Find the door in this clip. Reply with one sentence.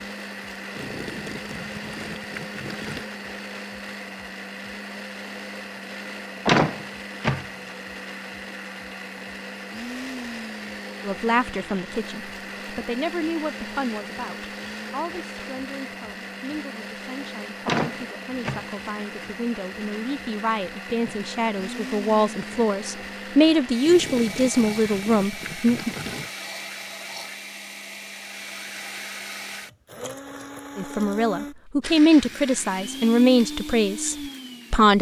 You can hear the door from 6.5 to 7.5 s and from 17.6 to 18.9 s.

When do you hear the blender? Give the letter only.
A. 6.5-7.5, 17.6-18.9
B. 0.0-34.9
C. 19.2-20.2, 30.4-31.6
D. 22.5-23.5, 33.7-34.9
B.